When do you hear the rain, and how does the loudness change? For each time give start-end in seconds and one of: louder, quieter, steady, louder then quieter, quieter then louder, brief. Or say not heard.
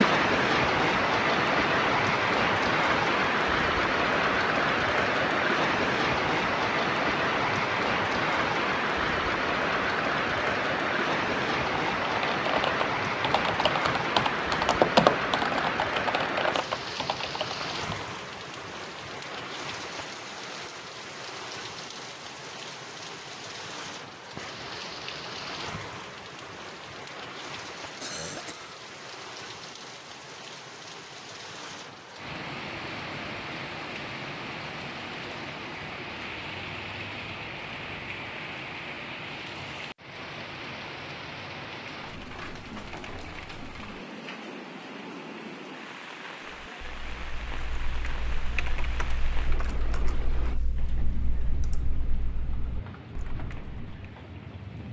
0.0-54.8 quieter.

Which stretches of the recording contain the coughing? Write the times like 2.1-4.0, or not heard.
28.0-28.7.